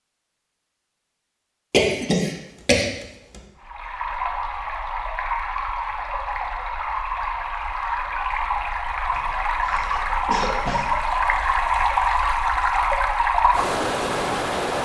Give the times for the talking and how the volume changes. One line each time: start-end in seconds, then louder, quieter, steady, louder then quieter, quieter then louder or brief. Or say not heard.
not heard.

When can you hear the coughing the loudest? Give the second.
2 s.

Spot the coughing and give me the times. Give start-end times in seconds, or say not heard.
1.7-2.9, 9.2-10.9.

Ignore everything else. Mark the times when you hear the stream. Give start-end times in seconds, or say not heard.
3.6-14.8.